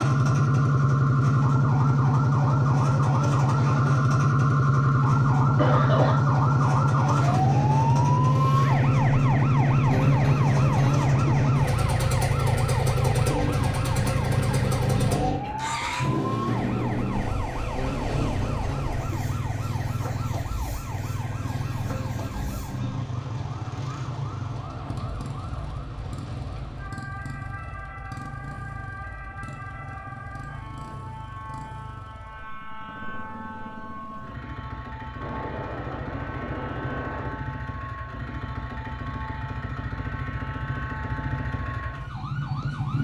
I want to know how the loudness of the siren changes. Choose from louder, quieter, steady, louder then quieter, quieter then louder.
quieter.